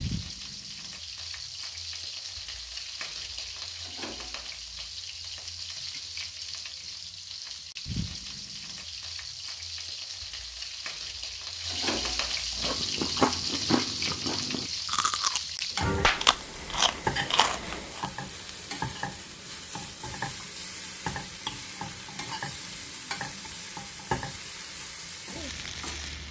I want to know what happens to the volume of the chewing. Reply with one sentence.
The volume of the chewing goes down, then up.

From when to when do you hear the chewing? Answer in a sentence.
You can hear the chewing from 12.6 to 18.1 s.